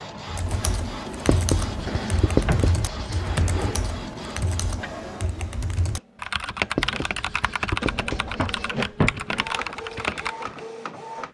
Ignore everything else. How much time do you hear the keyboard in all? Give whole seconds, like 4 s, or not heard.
10 s.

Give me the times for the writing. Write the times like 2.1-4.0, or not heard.
1.2-3.2, 6.8-8.7.